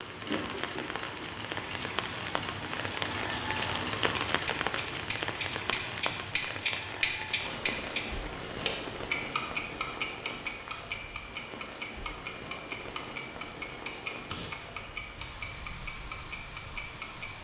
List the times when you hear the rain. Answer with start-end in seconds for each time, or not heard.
0.0-17.3.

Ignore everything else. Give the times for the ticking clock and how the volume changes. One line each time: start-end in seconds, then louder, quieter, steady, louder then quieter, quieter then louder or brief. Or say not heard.
0.0-17.2 louder then quieter.